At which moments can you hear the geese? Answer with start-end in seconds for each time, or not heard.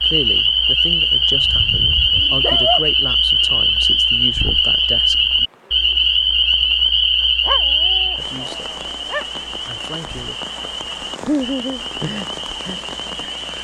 not heard.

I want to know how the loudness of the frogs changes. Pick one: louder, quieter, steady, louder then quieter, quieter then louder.
quieter.